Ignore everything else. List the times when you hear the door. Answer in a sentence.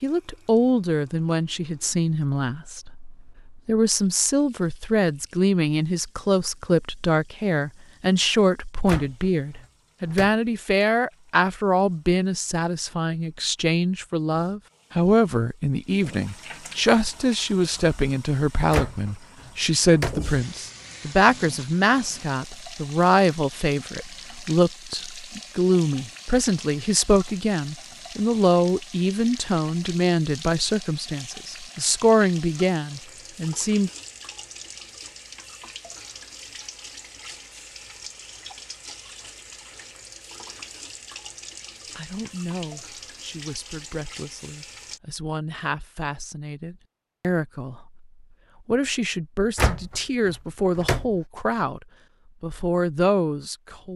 The door can be heard from 8.8 to 10.3 s, from 18.7 to 20.2 s and from 49.5 to 51.1 s.